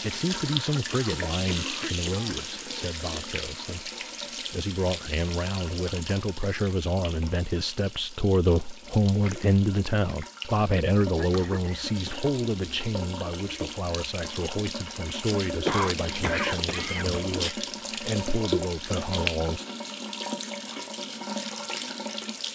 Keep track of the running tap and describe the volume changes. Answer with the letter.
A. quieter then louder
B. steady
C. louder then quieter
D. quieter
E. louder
A.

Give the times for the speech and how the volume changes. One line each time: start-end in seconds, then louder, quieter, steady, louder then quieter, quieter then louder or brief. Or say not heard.
0.0-19.6 louder then quieter.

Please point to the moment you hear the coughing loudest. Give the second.
16 s.